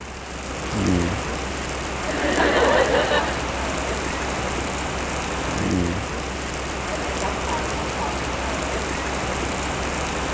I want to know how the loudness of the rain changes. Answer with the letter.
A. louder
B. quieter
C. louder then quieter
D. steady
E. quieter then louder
D.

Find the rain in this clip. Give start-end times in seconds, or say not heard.
0.0-10.2.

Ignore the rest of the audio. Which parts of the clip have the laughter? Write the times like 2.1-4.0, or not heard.
2.0-3.5.